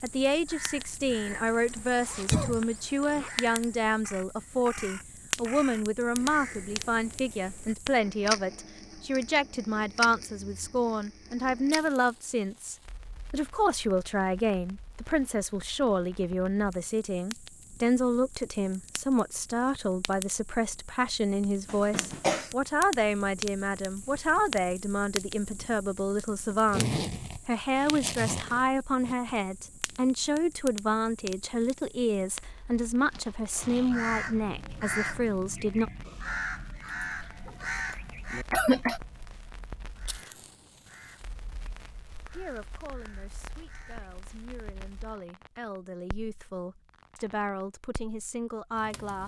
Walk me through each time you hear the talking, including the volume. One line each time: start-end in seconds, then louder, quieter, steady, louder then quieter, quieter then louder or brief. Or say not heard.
0.0-35.9 steady
42.4-49.2 louder.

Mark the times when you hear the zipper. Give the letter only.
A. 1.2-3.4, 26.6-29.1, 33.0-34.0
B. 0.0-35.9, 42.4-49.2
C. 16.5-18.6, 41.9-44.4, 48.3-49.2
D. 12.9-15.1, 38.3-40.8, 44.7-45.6
A.